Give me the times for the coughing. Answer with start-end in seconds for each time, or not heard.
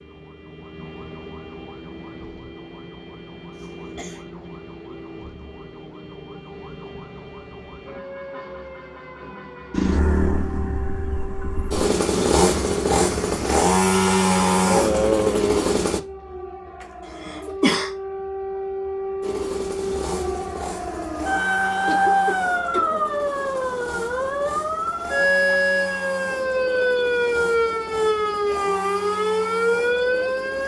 3.6-4.2, 17.2-17.9, 21.9-23.0.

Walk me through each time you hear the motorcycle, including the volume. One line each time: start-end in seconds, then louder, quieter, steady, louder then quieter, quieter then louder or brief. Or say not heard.
9.7-16.0 louder
19.2-30.6 steady.